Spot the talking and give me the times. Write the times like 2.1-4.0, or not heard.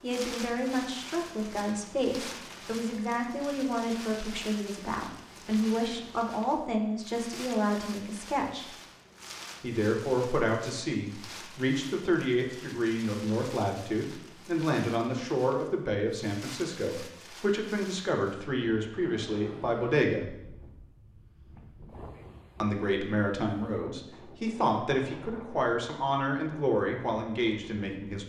0.0-8.7, 9.6-20.4, 22.6-28.2.